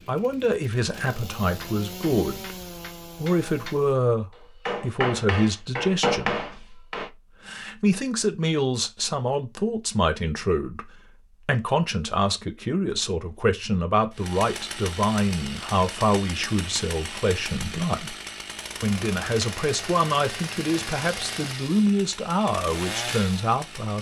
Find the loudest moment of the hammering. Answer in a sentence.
The volume of the hammering peaks at 6 seconds.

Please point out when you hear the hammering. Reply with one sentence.
You can hear the hammering from 1.4 to 3.8 s and from 4.7 to 7.1 s.